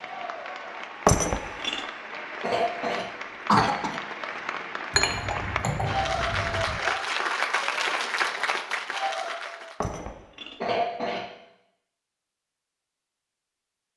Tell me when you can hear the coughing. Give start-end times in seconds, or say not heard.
2.4-4.0, 10.6-11.2.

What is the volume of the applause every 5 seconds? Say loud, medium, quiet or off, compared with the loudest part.
medium, loud, off.